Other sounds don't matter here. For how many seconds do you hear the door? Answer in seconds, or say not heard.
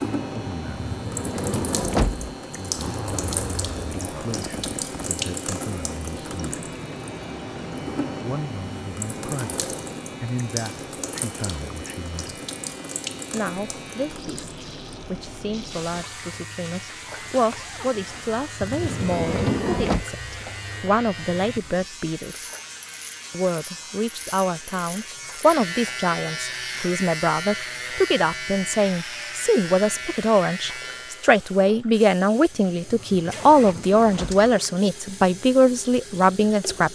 5 s.